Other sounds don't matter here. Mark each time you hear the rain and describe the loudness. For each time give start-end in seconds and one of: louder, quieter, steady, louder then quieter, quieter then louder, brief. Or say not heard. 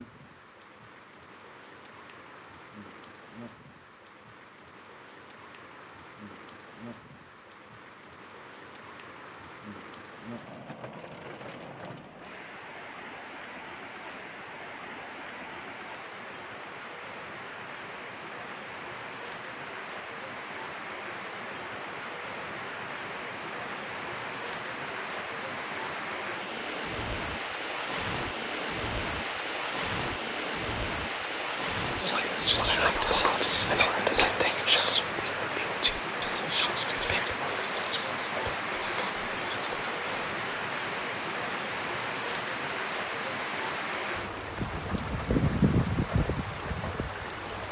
0.0-47.6 louder.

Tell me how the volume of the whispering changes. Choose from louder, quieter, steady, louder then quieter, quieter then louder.
quieter.